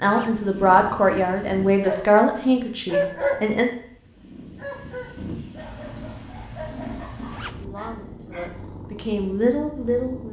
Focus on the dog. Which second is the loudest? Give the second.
3 s.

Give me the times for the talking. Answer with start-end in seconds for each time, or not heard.
0.0-3.7, 7.4-10.2.